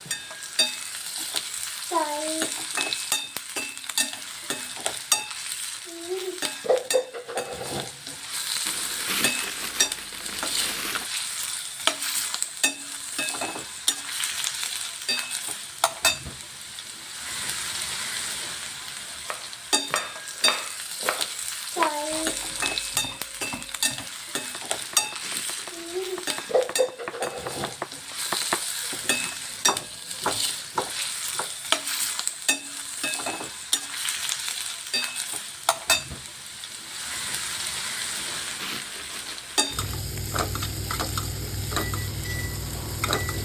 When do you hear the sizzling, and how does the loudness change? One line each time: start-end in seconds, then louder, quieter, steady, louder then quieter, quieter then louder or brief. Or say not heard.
0.0-43.4 steady.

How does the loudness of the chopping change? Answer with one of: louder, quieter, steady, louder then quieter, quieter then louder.
quieter then louder.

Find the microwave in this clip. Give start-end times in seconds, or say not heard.
42.0-43.4.